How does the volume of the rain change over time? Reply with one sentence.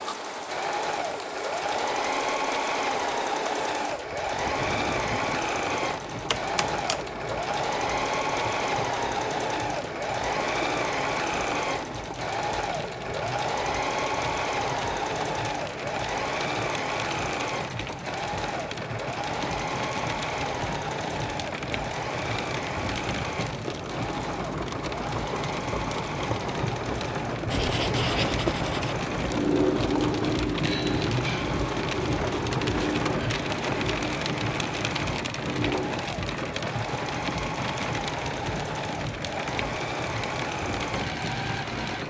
The loudness of the rain goes up.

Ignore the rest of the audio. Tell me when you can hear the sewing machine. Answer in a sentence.
The sewing machine can be heard from 0.0 to 42.0 s.